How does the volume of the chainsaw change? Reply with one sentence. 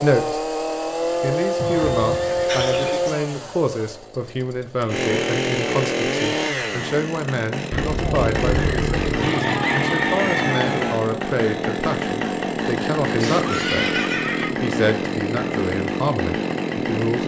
The volume of the chainsaw stays about the same.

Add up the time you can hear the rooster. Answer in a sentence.
The rooster can be heard for 2 seconds in total.